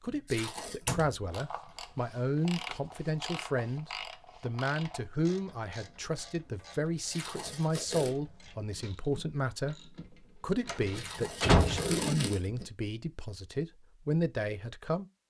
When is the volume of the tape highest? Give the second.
12 s.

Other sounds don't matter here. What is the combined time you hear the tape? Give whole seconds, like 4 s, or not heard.
3 s.